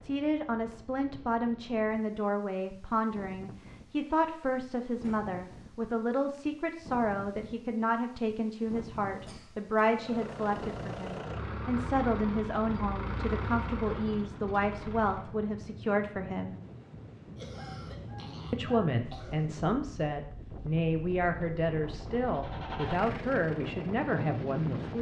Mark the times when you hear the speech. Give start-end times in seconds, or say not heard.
0.0-16.6, 18.5-24.9.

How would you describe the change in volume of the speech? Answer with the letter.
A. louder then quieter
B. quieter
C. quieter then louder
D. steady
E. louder
D.